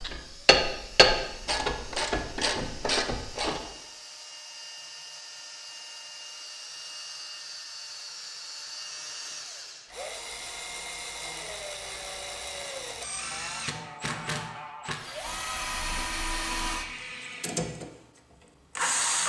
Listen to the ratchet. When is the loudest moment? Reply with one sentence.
The loudest moment of the ratchet is at 1 second.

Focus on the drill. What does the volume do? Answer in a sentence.
The loudness of the drill goes up.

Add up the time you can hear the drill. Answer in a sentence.
The drill can be heard for 19 seconds in total.